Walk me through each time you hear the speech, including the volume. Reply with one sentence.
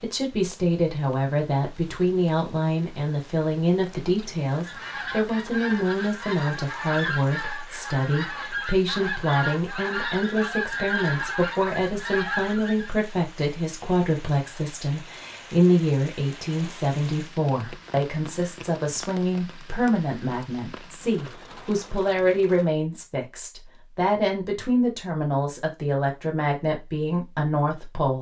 You can hear the speech from 0.0 to 28.1 s, at a steady volume.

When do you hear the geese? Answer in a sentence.
The geese can be heard from 4.5 to 12.9 s.